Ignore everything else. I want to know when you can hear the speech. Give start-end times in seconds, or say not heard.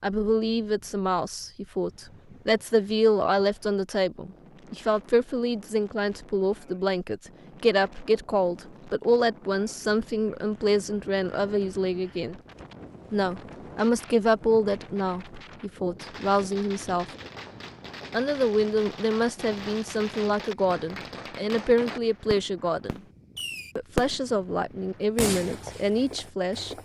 0.0-12.3, 13.1-17.1, 18.1-23.0, 23.8-26.8.